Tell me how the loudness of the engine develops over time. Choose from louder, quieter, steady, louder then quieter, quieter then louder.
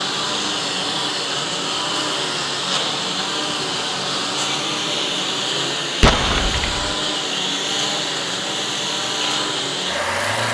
steady.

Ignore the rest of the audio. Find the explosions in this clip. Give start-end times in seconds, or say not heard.
6.0-7.0.